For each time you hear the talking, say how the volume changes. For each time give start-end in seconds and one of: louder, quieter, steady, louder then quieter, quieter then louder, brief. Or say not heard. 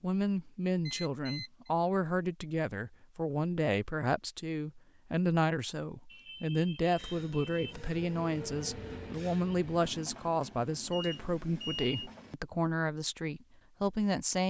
0.0-14.4 steady.